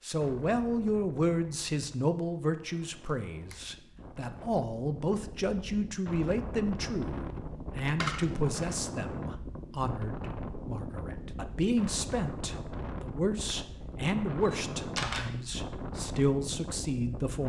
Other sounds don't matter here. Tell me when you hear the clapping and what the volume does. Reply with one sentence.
You can't hear the clapping here.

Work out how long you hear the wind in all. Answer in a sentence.
You can hear the wind for 17 seconds altogether.